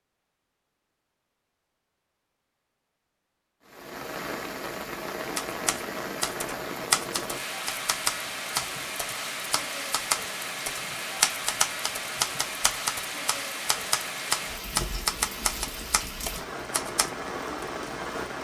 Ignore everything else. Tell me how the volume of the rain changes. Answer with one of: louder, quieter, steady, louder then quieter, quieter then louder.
steady.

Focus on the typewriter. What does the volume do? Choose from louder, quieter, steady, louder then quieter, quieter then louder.
steady.